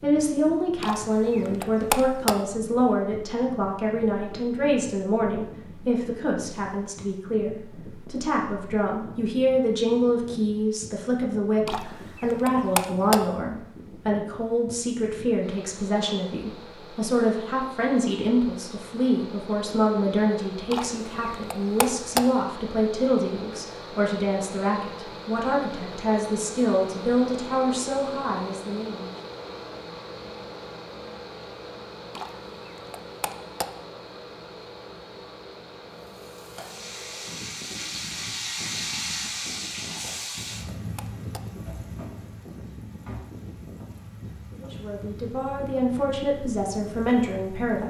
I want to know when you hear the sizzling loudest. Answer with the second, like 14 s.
39 s.